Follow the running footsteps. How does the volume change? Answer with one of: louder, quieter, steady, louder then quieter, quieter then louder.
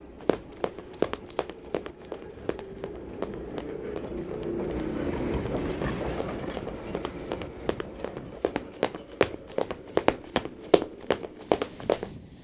quieter then louder.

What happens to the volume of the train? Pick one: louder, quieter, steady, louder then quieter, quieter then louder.
louder then quieter.